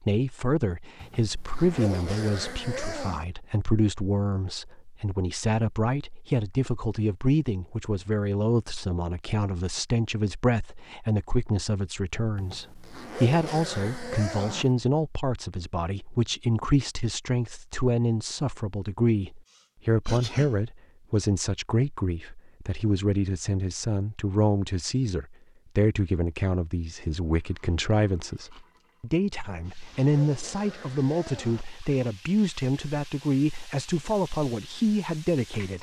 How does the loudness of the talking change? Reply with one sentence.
The loudness of the talking stays about the same.